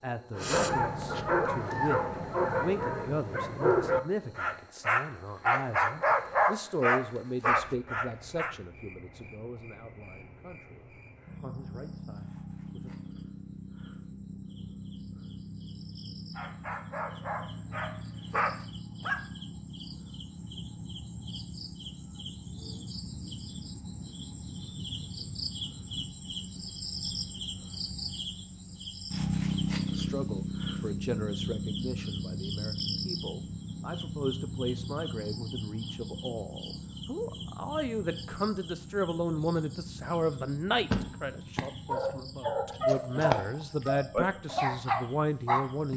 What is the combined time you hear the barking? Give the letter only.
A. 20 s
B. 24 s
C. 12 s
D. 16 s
D.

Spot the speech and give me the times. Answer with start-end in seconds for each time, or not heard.
0.0-12.9, 29.9-45.9.